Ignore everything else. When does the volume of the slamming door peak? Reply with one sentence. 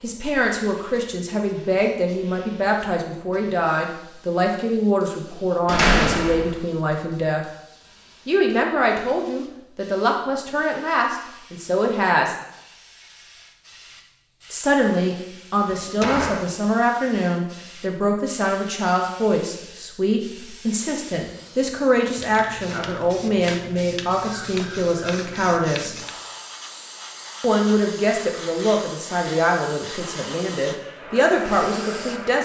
The loudest moment of the slamming door is at 6 seconds.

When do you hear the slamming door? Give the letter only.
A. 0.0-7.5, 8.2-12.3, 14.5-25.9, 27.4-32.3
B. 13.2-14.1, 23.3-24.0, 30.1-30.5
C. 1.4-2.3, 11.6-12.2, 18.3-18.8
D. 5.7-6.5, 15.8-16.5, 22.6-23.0
D.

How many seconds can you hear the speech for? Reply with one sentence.
The speech can be heard for 28 seconds in total.